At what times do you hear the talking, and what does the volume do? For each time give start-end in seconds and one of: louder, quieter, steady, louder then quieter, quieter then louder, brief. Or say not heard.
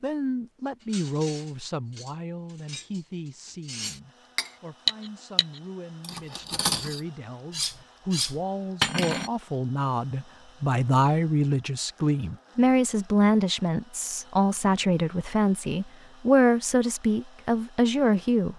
0.0-18.5 quieter then louder.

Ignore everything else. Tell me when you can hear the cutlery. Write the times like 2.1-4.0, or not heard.
0.8-9.3.